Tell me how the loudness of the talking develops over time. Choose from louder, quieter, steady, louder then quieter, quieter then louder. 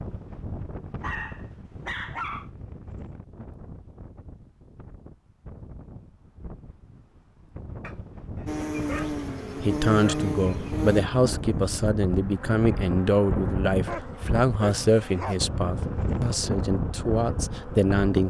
steady.